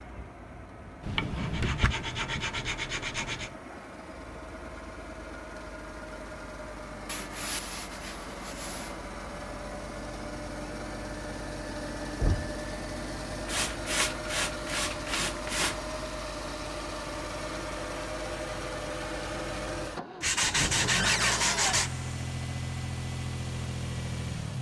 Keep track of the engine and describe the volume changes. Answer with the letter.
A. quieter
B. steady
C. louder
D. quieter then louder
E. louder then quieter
C.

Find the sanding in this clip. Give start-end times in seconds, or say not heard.
1.0-3.5, 7.0-8.9, 13.4-15.8, 20.2-21.9.